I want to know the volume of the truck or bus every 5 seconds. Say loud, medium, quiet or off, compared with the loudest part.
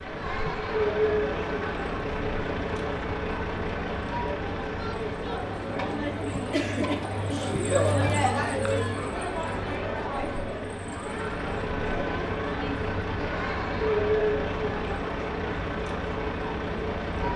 loud, medium, loud, loud.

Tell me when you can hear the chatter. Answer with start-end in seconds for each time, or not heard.
0.0-17.3.